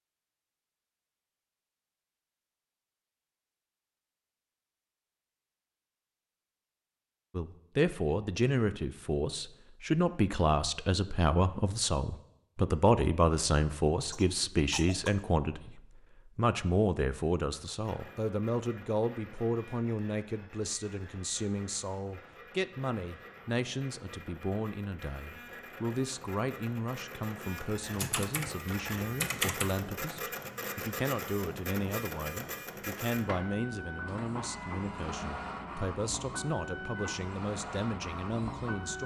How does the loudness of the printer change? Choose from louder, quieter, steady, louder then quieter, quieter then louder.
louder.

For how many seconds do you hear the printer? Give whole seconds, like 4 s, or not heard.
21 s.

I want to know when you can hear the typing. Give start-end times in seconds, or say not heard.
27.6-29.8.